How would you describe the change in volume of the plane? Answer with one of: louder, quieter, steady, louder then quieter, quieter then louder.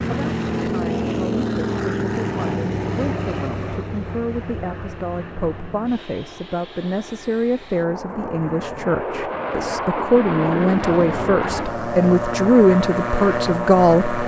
quieter then louder.